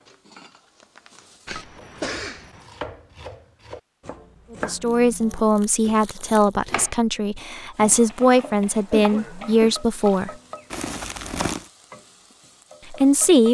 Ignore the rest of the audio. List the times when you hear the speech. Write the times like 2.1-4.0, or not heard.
4.5-10.3, 12.9-13.4.